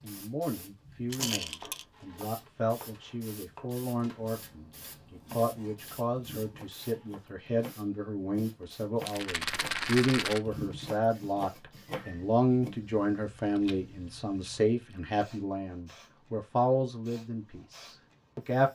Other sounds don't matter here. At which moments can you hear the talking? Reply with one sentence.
You can hear the talking from 0.0 to 18.6 s.